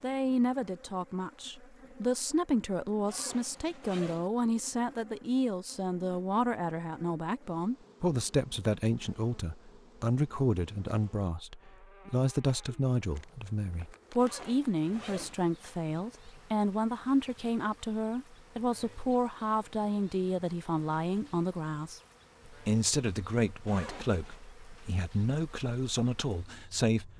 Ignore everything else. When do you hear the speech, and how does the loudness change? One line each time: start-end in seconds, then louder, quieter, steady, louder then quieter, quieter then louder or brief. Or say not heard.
0.0-27.1 steady.